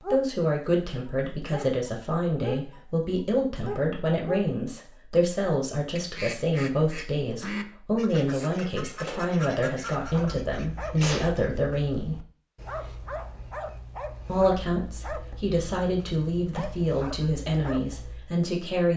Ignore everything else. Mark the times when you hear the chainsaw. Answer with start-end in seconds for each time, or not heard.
not heard.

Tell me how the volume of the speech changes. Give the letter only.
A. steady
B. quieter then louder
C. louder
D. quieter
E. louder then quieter
A.